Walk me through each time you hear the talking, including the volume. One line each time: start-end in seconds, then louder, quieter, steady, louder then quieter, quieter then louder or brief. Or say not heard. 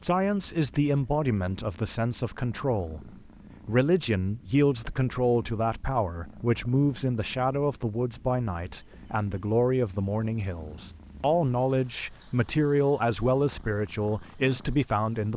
0.0-15.3 steady.